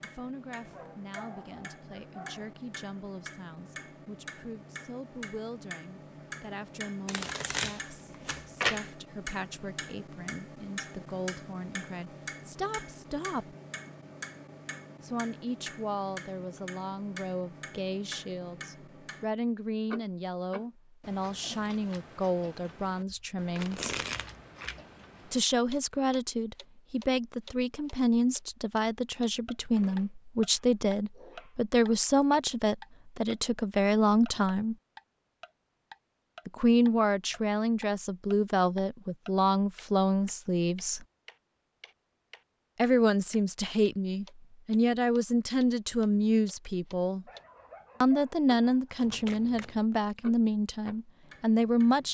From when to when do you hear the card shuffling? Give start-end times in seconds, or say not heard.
7.0-8.9, 23.1-24.8, 49.0-49.8.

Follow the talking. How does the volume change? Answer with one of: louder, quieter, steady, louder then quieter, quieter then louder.
louder.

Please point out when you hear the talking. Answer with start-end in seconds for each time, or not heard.
0.0-13.6, 15.0-23.9, 25.3-34.8, 36.5-41.0, 42.8-47.2, 48.0-52.0.